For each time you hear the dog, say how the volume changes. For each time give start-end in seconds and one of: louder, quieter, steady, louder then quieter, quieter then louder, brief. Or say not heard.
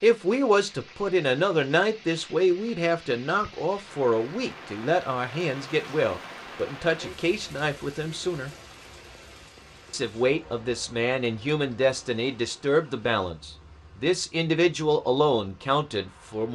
not heard.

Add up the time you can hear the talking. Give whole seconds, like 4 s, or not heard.
15 s.